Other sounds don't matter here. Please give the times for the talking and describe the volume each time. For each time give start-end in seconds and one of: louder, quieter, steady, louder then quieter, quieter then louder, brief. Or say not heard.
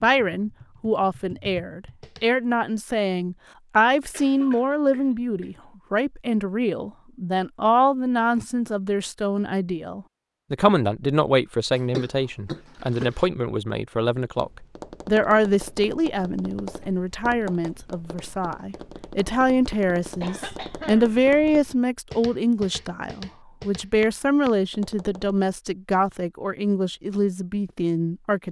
0.0-28.4 steady.